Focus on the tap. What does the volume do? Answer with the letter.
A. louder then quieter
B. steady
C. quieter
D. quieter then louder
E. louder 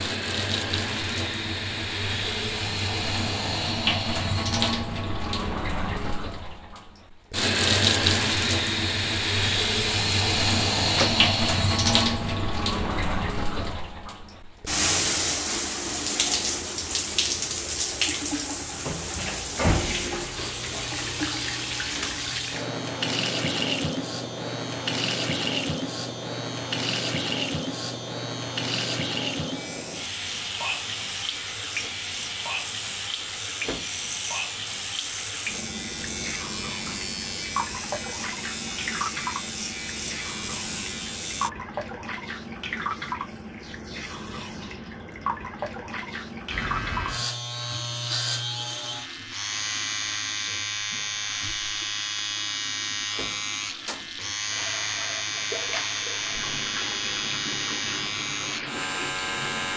C.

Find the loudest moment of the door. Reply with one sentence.
The volume of the door peaks at 11 seconds.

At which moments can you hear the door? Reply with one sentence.
You can hear the door from 10.8 to 11.2 s, from 33.2 to 33.9 s and from 52.7 to 54.1 s.